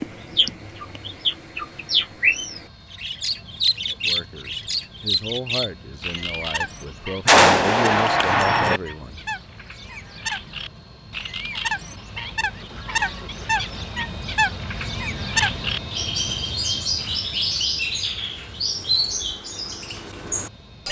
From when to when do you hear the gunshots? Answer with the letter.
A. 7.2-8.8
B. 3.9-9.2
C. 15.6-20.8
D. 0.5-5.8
A.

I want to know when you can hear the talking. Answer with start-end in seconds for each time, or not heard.
3.9-9.2.